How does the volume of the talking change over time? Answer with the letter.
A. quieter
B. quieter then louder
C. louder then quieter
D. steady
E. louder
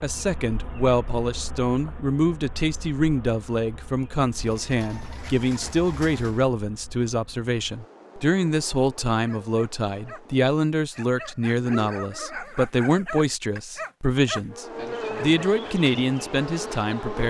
D.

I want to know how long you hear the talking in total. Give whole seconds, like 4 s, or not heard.
17 s.